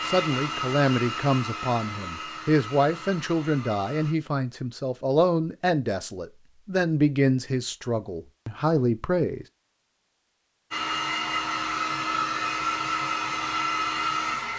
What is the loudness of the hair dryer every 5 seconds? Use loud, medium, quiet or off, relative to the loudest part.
medium, off, loud.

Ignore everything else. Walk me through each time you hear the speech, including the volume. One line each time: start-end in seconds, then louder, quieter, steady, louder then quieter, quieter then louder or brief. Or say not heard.
0.0-9.4 steady.